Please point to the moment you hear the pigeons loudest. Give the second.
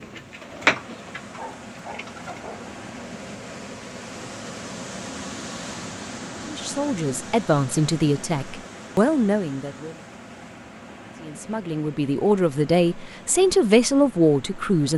1 s.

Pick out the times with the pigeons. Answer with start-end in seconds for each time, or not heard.
0.0-2.5.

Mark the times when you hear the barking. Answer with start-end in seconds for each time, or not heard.
1.3-2.8.